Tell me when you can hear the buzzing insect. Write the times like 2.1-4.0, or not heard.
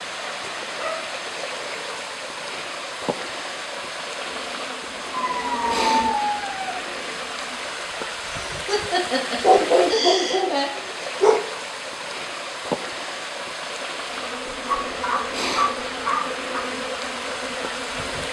4.2-7.7, 14.1-18.2.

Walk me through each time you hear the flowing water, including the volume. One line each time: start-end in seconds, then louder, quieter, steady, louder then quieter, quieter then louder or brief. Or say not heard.
0.0-18.2 steady.